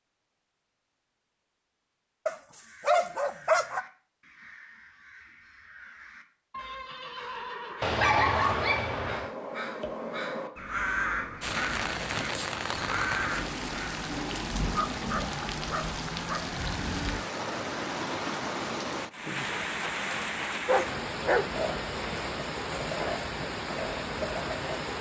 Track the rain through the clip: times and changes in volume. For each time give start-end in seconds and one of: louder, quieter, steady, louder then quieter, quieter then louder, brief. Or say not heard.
11.4-24.9 steady.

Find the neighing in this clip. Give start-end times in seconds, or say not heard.
6.5-8.0.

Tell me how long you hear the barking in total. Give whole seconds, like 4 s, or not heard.
6 s.